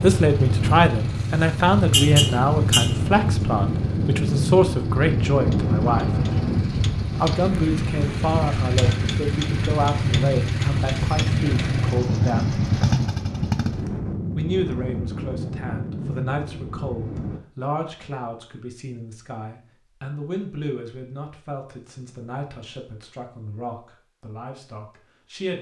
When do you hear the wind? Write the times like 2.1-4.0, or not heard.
0.0-17.4.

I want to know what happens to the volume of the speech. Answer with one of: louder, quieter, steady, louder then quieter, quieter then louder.
quieter.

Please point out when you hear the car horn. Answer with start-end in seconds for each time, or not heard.
1.1-2.9.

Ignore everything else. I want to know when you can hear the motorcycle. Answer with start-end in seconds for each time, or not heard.
0.0-14.0.